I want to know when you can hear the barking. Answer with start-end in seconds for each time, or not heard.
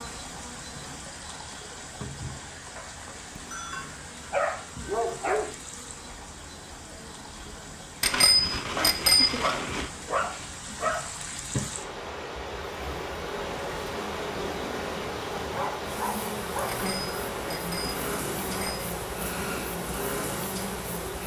2.8-5.5, 8.8-11.1, 15.4-16.8.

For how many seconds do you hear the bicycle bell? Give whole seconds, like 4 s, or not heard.
5 s.